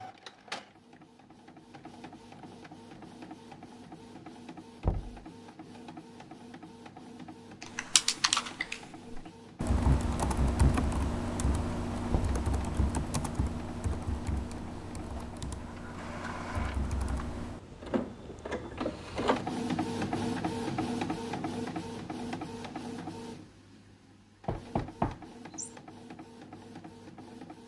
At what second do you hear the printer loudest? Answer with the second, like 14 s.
20 s.